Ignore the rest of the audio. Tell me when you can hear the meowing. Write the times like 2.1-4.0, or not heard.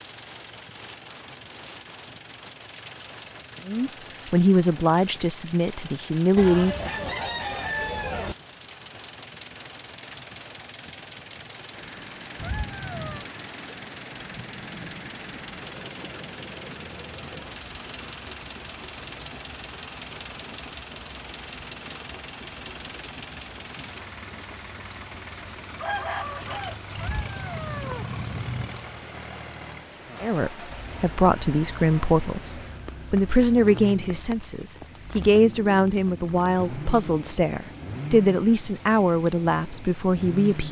12.3-13.2, 26.9-28.8.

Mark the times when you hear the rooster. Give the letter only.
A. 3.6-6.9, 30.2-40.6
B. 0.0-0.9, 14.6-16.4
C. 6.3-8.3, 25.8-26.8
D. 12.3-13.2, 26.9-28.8
C.